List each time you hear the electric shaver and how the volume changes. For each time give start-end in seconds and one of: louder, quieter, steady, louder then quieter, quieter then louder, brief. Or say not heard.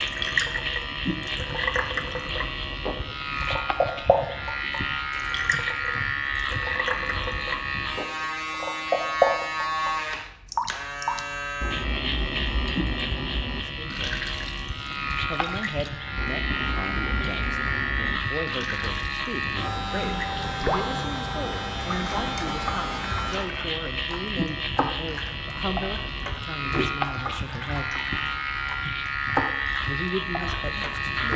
0.0-31.3 steady.